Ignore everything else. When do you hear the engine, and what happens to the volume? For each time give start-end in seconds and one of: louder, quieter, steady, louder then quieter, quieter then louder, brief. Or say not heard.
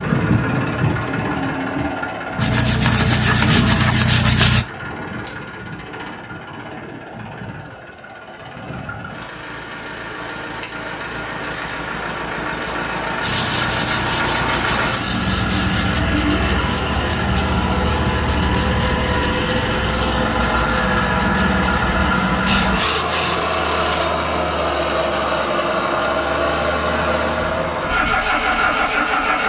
0.0-29.4 quieter then louder.